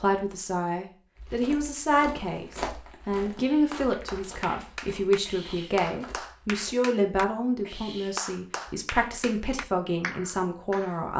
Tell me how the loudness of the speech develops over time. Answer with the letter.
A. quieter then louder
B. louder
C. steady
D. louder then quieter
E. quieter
C.